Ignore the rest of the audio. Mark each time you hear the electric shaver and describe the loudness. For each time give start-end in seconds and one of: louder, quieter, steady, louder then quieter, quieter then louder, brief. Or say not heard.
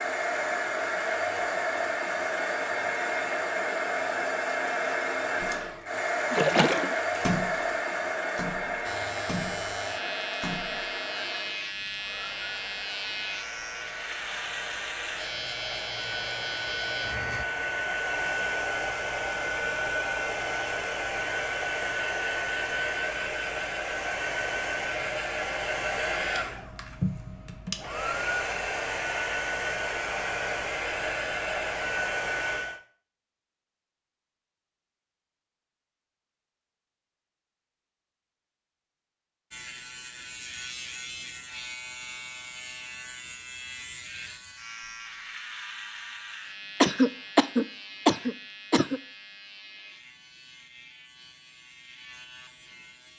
8.8-17.4 steady
39.5-53.1 quieter.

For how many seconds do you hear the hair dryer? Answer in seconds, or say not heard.
33 s.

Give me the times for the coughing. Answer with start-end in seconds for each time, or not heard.
46.8-49.0.